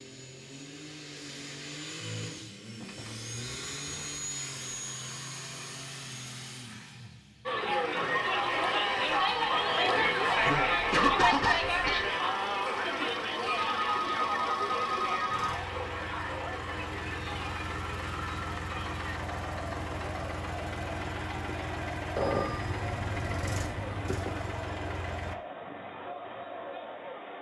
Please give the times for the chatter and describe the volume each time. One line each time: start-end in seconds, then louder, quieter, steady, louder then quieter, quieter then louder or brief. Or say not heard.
7.5-27.3 quieter.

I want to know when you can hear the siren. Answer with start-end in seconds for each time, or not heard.
not heard.